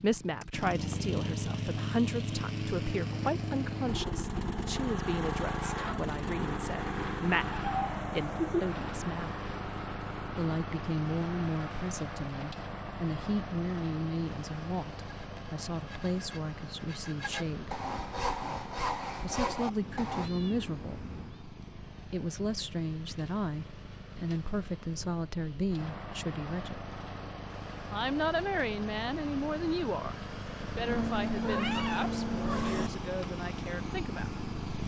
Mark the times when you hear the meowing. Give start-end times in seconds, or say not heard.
7.5-8.7, 19.8-21.4, 30.9-32.9.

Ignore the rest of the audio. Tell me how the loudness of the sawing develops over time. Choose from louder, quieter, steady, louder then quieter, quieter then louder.
louder.